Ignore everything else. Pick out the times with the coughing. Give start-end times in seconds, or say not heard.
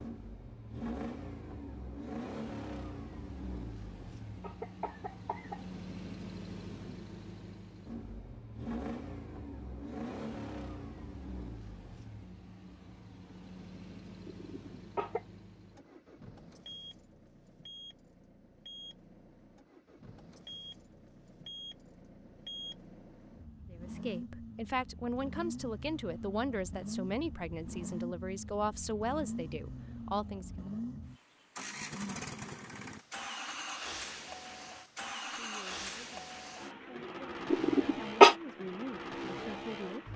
4.0-5.6, 14.2-15.2, 37.5-38.4.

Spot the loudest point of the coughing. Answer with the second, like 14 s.
38 s.